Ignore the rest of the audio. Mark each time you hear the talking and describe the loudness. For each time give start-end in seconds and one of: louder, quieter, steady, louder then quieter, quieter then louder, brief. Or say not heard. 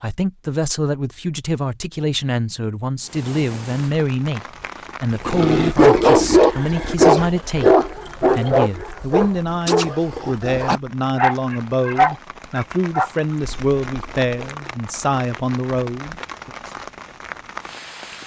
0.0-16.5 steady.